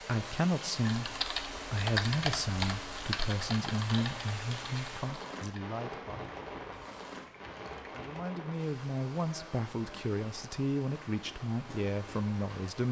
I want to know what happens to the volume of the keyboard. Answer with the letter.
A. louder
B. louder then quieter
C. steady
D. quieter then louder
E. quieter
E.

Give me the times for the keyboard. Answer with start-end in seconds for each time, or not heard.
0.8-8.2.